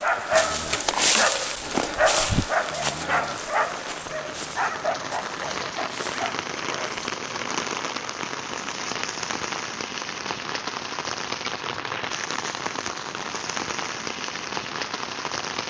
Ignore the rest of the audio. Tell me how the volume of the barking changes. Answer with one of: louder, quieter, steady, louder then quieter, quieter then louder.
quieter.